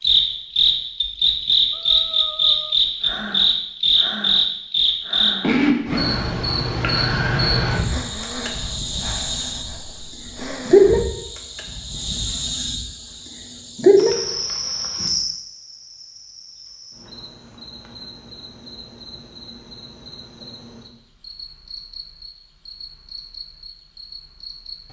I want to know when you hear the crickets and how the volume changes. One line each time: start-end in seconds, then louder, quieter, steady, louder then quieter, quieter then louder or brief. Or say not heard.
0.0-24.8 quieter.